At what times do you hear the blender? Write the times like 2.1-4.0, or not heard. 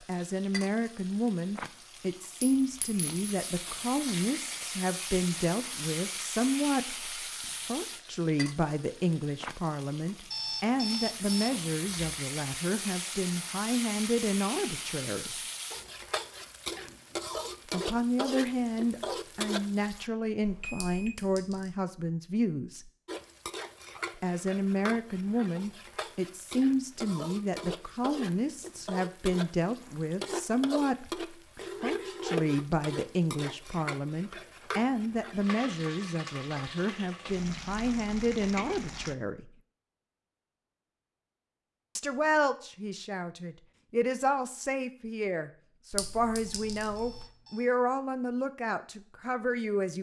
not heard.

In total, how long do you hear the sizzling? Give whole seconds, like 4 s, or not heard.
36 s.